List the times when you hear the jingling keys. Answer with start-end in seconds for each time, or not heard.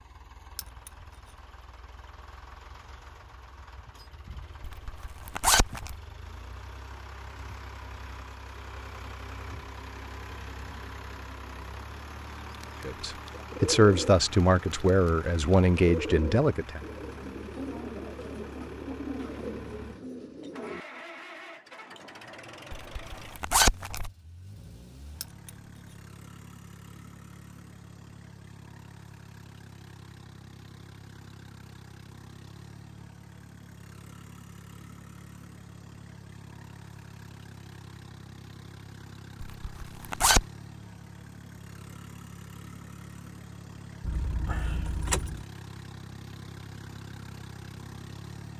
0.6-1.4, 25.2-25.9, 44.0-45.5.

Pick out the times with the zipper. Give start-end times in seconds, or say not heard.
4.6-6.0, 22.7-24.1, 39.6-40.5.